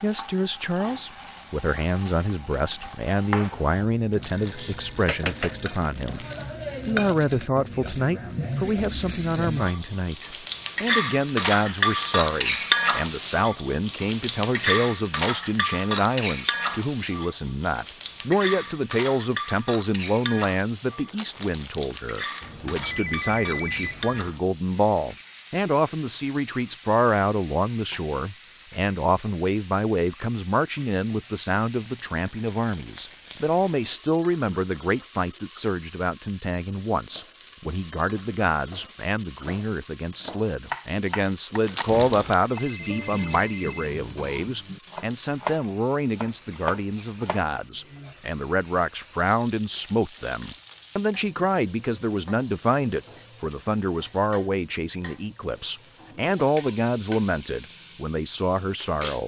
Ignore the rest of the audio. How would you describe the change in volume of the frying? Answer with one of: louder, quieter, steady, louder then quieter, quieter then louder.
quieter.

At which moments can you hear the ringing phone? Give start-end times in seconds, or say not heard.
4.2-5.8, 22.4-24.2, 42.0-43.9.